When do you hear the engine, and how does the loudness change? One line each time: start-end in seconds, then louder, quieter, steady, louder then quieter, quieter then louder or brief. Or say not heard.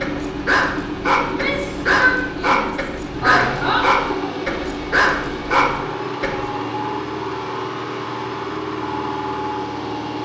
0.0-10.2 steady.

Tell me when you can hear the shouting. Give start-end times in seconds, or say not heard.
1.2-3.9.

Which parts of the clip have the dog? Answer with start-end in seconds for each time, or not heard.
0.0-6.4.